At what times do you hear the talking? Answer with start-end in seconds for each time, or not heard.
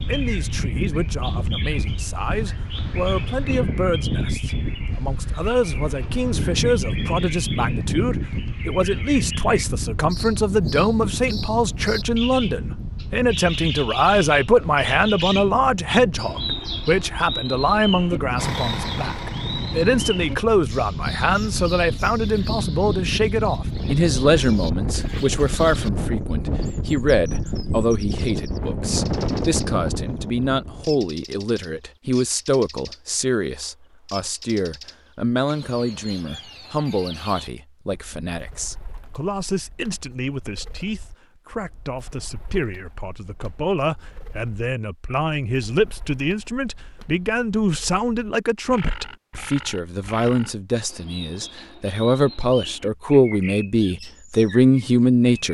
0.1-55.4.